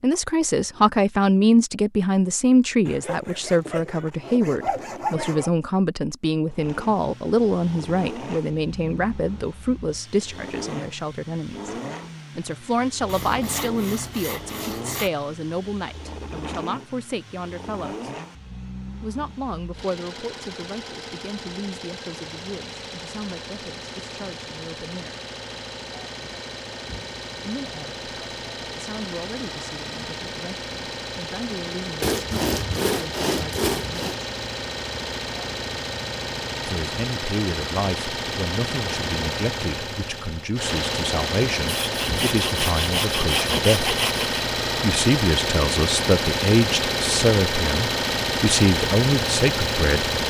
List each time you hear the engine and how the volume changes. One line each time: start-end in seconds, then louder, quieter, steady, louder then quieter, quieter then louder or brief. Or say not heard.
6.5-50.2 louder.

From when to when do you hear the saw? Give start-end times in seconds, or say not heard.
2.9-5.5, 13.1-15.1, 32.0-34.2, 41.6-44.3.